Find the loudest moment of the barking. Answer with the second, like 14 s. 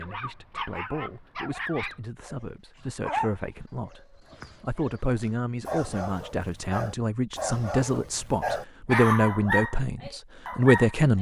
9 s.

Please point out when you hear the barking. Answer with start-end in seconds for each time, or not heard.
0.0-11.1.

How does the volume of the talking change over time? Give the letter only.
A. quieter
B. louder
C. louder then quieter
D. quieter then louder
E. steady
B.